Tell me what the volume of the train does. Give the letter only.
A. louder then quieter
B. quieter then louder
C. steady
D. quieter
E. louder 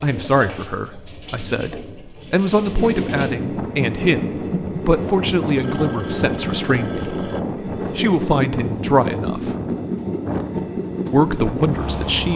C.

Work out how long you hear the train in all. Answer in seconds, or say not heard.
10 s.